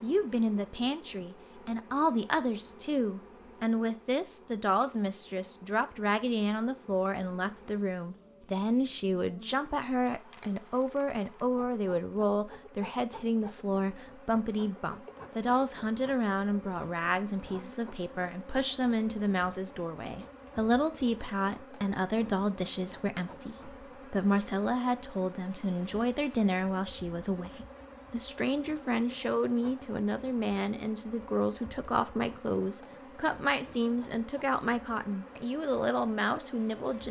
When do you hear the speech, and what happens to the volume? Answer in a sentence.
The speech can be heard from 0.0 to 37.0 s, at a steady volume.